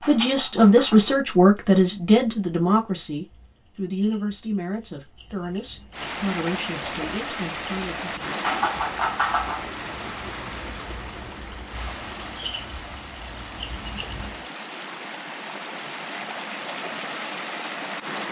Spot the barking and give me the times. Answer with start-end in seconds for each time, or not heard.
not heard.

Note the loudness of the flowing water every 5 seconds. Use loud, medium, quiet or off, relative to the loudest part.
off, loud, medium, loud.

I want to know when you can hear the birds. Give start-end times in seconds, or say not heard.
0.0-14.5.